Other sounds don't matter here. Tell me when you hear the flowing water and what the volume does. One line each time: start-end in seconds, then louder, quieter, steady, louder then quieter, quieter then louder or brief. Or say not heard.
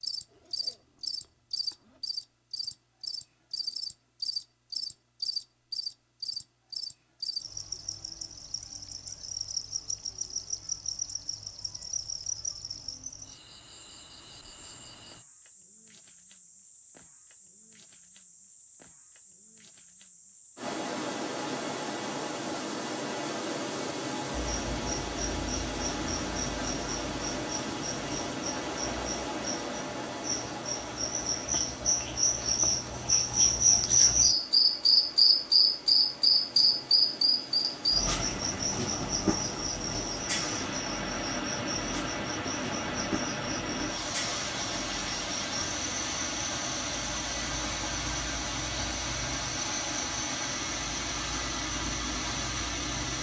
20.6-53.1 quieter then louder.